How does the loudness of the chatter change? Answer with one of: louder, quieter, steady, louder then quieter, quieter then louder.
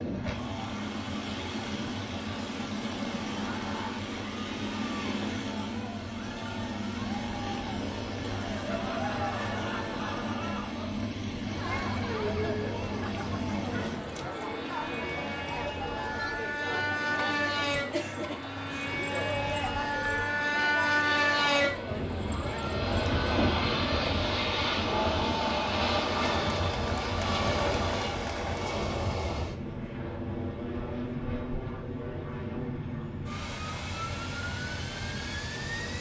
louder.